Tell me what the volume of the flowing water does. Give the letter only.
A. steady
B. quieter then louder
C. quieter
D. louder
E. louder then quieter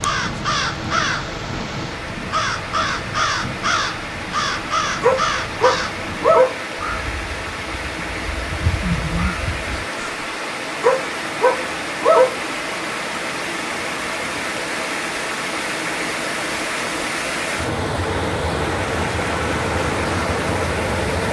D.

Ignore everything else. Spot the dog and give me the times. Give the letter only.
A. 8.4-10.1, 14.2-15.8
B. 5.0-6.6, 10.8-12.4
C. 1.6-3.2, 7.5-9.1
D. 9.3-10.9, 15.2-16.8
B.